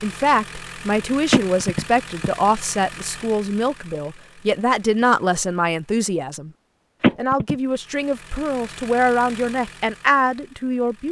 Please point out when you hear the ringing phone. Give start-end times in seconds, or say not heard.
1.3-2.3, 7.0-7.5.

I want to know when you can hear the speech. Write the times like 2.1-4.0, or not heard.
0.0-6.5, 7.2-11.0.